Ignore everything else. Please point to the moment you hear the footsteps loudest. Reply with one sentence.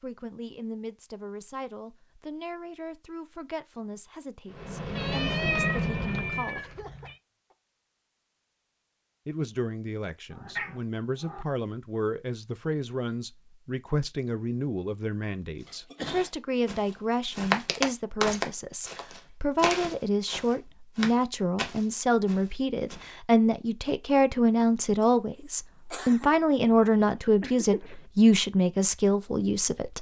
The loudest moment of the footsteps is at 18 seconds.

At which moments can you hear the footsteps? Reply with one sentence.
The footsteps can be heard from 15.6 to 23.1 s.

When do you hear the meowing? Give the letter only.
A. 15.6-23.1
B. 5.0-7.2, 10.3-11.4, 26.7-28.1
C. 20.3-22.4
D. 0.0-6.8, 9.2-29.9
B.